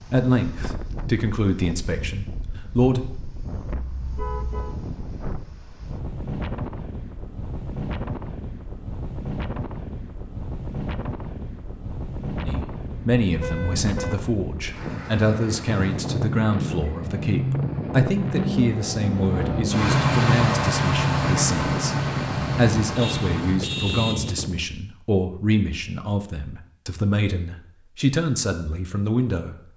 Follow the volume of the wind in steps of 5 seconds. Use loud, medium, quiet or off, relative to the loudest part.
medium, loud, loud, loud, loud, off.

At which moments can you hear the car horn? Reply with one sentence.
You can hear the car horn from 3.6 to 4.8 s, from 12.8 to 14.3 s and from 22.9 to 24.4 s.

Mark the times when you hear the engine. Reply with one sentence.
You can hear the engine from 14.7 to 23.6 s.